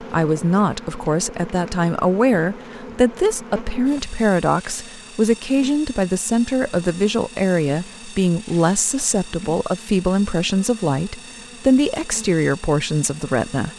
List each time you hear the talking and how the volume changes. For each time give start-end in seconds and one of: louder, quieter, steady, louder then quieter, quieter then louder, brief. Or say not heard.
0.0-13.7 steady.